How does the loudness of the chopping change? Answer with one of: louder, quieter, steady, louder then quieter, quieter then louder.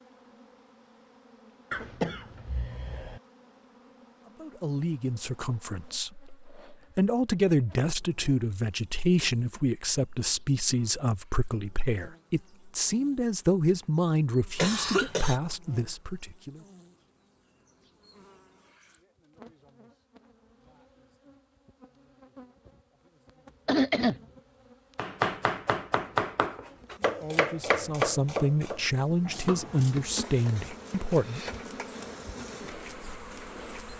quieter.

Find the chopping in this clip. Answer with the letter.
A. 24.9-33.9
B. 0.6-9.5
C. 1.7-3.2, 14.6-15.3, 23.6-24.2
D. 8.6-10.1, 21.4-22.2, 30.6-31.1
A.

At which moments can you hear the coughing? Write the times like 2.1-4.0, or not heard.
1.7-3.2, 14.6-15.3, 23.6-24.2.